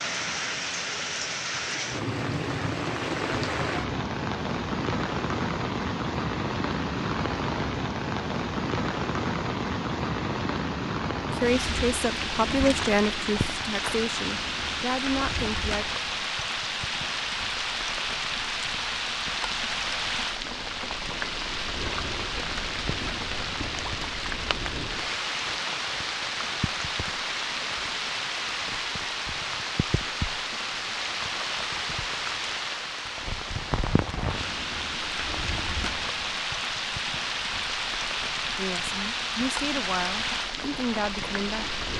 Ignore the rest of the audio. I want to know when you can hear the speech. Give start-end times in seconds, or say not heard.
11.2-15.8, 38.5-41.7.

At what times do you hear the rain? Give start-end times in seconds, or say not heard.
0.0-41.9.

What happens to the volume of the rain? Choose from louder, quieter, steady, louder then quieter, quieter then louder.
steady.